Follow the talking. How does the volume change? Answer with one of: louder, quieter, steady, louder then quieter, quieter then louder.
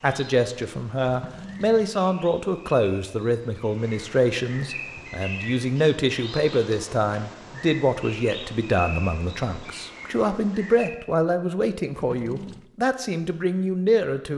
steady.